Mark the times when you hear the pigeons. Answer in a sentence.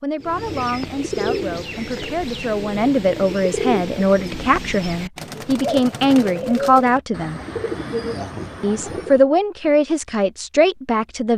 You can hear the pigeons from 0.2 to 9.2 s.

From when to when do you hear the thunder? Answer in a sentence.
You can't hear the thunder here.